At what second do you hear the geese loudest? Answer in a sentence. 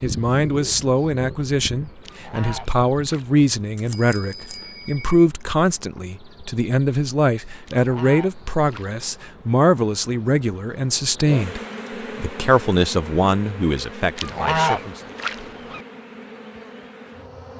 The volume of the geese peaks at 15 seconds.